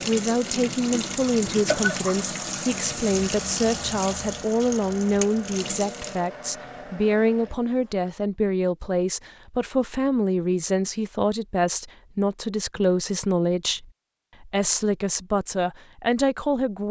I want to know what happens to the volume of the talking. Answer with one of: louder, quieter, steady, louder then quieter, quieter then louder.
steady.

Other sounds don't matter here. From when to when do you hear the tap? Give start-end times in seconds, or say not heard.
0.0-6.3.